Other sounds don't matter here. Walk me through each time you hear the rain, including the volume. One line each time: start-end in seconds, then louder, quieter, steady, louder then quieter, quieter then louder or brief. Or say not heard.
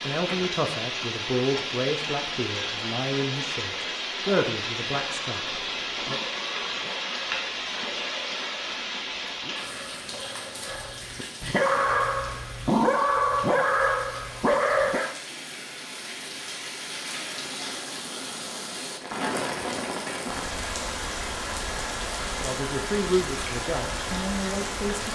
0.0-25.1 quieter then louder.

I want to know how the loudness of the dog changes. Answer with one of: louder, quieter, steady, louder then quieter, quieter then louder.
louder.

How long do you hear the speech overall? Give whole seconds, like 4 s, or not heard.
9 s.